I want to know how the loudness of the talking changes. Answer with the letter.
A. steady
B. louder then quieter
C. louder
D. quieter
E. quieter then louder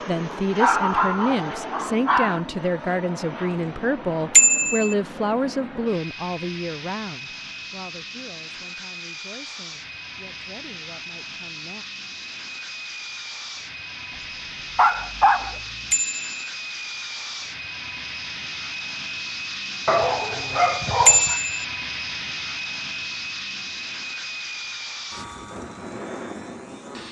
D.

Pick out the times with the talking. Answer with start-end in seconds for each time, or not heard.
0.1-11.8.